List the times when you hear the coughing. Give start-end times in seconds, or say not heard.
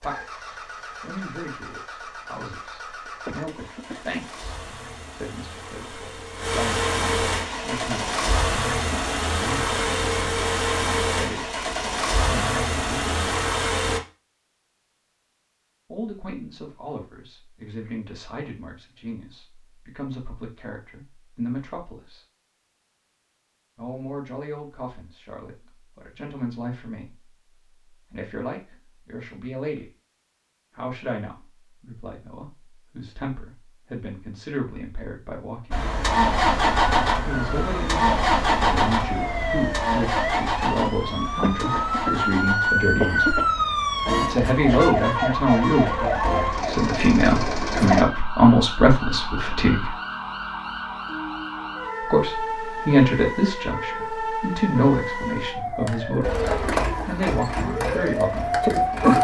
3.0-4.0, 41.4-43.5.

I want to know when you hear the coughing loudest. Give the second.
43 s.